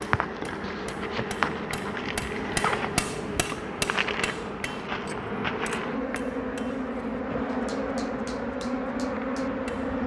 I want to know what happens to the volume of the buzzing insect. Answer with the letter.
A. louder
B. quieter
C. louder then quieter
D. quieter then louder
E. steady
E.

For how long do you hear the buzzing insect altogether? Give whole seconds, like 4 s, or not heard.
10 s.